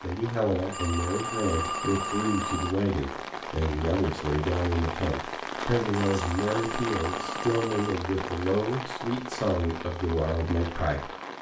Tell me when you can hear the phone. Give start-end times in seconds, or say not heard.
0.7-2.8, 6.0-8.0.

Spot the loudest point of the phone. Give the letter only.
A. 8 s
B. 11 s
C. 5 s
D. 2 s
D.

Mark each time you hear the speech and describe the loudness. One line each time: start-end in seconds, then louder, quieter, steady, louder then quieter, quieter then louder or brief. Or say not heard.
0.0-11.1 steady.